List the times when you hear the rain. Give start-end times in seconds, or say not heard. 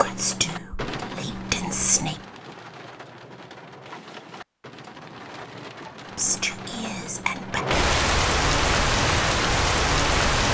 0.0-10.4.